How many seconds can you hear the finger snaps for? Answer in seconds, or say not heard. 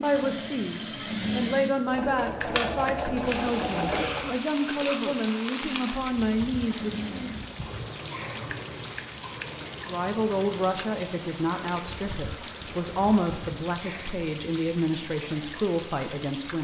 2 s.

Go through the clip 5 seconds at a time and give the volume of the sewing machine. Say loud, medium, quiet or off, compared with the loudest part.
loud, medium, quiet, off.